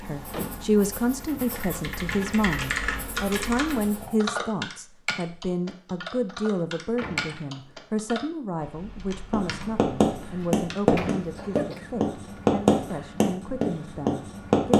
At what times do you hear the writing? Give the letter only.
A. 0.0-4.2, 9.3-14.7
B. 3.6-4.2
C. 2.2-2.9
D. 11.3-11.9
A.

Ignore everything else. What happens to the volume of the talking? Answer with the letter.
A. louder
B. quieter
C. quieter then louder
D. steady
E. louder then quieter
B.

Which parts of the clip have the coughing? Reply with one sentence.
The coughing can be heard from 11.3 to 11.9 s.